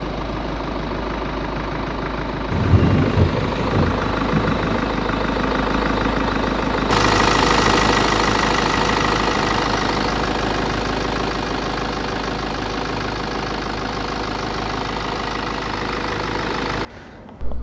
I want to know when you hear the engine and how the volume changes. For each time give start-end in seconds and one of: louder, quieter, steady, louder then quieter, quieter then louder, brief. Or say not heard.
0.0-17.5 louder then quieter.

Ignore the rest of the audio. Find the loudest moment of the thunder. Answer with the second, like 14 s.
3 s.